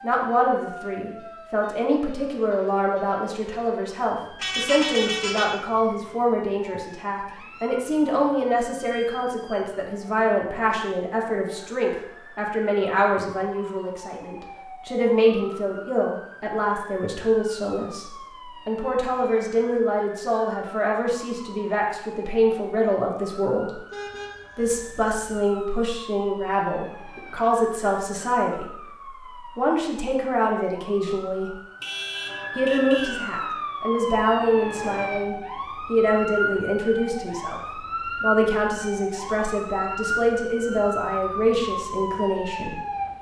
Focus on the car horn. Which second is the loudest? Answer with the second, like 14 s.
5 s.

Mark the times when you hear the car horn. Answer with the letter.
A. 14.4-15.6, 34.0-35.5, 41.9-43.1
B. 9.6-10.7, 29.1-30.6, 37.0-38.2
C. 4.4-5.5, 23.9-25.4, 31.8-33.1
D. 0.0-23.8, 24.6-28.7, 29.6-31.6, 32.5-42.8
C.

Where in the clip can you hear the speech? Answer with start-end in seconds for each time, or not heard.
0.0-23.8, 24.6-28.7, 29.6-31.6, 32.5-42.8.